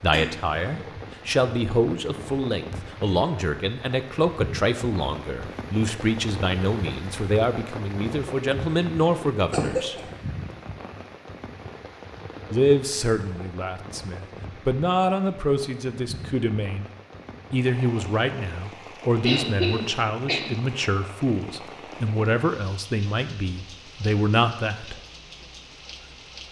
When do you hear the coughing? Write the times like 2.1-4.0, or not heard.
0.1-0.8, 9.5-10.1, 19.2-20.6.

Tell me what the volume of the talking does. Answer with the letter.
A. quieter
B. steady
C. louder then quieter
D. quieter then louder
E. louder
B.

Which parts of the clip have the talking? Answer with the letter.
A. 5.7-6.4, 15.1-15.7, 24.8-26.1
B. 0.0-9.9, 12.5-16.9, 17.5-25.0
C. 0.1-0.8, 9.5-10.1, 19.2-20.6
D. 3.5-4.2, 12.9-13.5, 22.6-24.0
B.